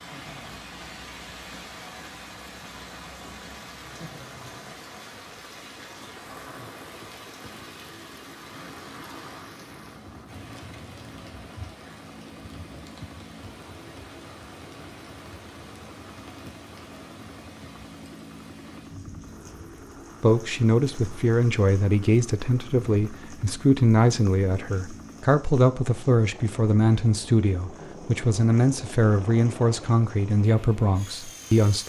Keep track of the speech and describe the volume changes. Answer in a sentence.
The loudness of the speech stays about the same.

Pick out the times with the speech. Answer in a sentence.
You can hear the speech from 20.2 to 31.8 s.